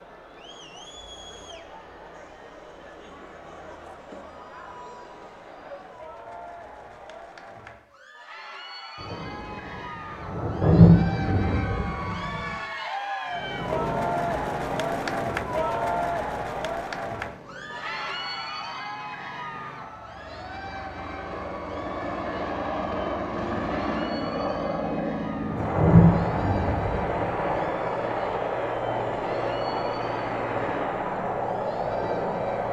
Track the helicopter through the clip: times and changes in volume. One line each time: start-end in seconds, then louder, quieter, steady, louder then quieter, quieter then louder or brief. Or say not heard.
13.2-32.6 quieter then louder.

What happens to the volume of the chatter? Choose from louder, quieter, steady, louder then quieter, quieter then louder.
louder then quieter.